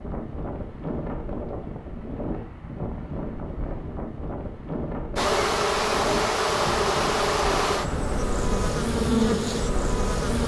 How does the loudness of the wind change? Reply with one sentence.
The loudness of the wind stays about the same.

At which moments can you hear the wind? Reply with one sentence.
You can hear the wind from 0.0 to 10.4 s.